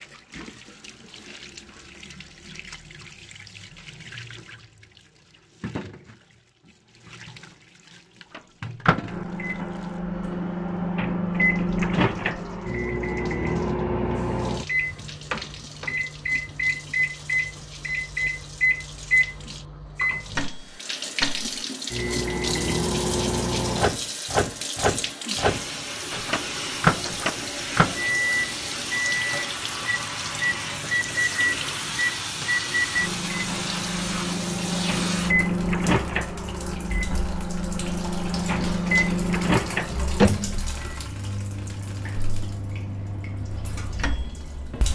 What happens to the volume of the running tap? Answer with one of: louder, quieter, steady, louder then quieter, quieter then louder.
louder then quieter.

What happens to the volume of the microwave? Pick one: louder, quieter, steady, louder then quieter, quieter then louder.
steady.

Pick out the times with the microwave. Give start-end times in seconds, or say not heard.
8.3-44.8.